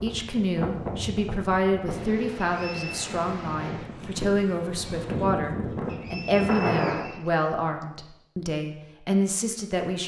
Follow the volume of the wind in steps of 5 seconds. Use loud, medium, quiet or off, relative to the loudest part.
medium, loud.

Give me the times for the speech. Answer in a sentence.
The speech can be heard from 0.0 to 10.0 s.